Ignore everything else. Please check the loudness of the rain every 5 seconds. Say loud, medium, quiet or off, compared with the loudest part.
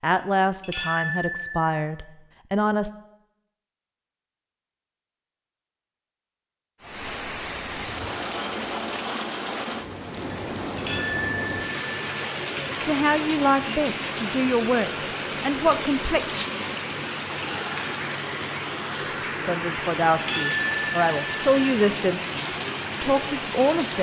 off, loud, loud, loud, loud.